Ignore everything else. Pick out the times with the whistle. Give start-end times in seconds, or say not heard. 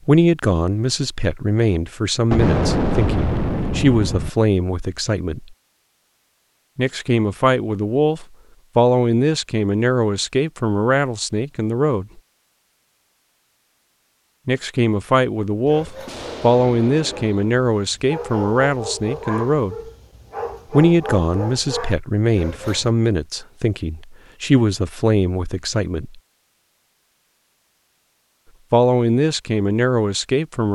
not heard.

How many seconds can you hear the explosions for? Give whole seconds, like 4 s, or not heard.
3 s.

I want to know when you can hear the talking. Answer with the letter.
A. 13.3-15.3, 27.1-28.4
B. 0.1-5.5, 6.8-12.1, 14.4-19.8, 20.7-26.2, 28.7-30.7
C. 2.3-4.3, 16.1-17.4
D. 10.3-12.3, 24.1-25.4
B.